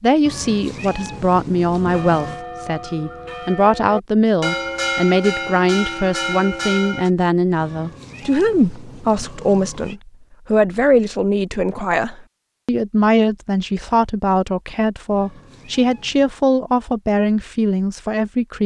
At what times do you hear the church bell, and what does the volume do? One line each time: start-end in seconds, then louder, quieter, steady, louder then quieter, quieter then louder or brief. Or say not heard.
1.8-7.1 louder.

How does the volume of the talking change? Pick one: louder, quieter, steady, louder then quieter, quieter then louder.
steady.